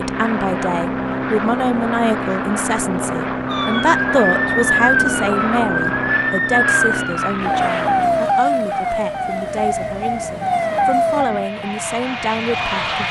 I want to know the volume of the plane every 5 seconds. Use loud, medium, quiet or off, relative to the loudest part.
loud, loud, medium.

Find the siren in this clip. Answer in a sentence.
You can hear the siren from 3.5 to 13.0 s.